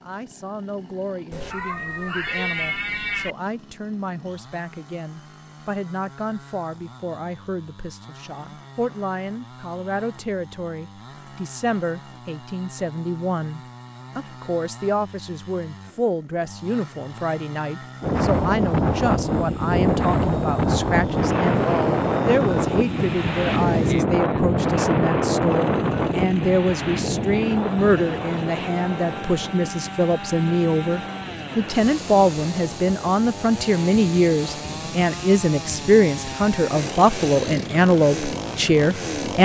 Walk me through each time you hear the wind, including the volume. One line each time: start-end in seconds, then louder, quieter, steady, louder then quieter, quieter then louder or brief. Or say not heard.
18.0-39.2 quieter.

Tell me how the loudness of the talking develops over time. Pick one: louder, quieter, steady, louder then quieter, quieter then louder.
louder.